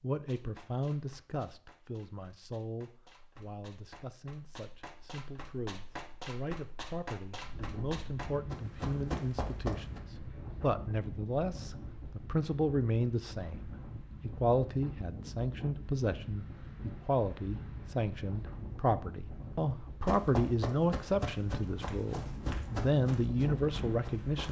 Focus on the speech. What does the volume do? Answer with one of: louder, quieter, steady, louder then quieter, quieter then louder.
louder.